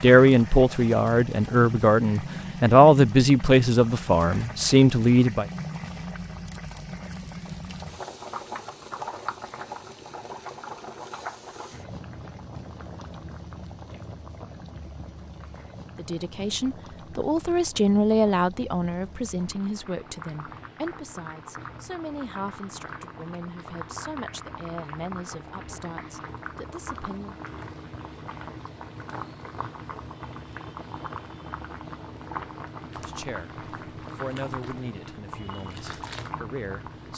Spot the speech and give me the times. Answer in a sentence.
The speech can be heard from 0.0 to 5.5 s, from 15.9 to 27.4 s and from 32.9 to 37.1 s.